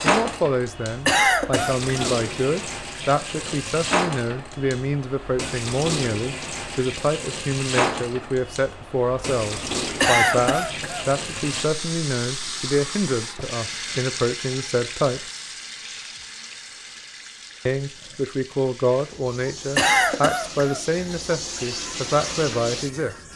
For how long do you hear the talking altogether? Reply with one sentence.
The talking can be heard for 21 seconds in total.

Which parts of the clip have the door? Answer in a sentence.
You can't hear the door here.